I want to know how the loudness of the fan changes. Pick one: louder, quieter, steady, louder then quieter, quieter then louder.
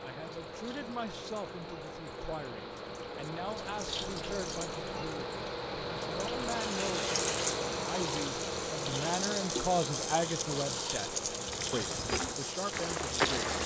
louder then quieter.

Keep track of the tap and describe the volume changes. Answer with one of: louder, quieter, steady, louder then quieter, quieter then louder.
louder.